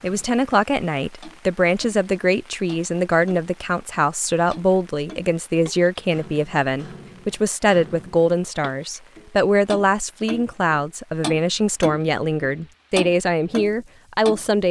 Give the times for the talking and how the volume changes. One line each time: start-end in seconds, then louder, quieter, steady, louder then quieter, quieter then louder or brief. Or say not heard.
0.0-14.6 steady.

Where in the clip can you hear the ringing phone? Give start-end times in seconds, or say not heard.
not heard.